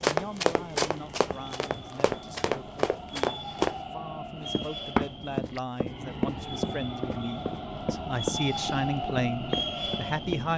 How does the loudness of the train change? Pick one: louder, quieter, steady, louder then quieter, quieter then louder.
louder.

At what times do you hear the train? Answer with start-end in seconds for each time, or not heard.
0.1-10.5.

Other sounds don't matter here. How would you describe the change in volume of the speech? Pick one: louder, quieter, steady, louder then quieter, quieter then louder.
louder.